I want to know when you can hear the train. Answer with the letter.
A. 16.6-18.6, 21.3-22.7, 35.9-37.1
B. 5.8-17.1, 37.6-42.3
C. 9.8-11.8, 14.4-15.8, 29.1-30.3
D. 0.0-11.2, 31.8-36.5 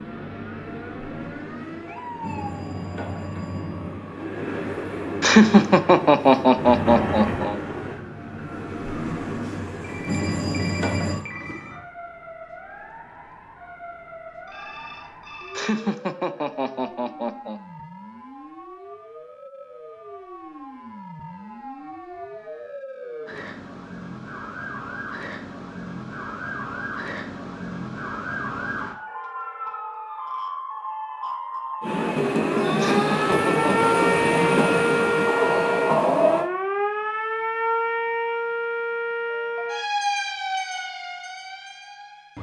D.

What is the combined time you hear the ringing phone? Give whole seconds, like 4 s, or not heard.
5 s.